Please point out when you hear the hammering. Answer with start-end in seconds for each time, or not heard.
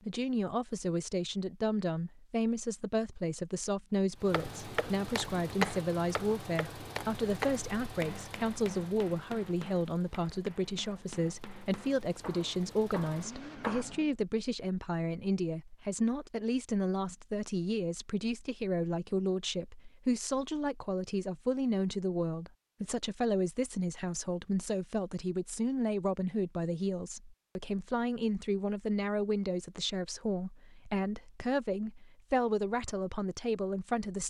4.3-13.9.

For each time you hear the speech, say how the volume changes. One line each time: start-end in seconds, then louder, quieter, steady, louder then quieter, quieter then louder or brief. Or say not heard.
0.1-34.2 steady.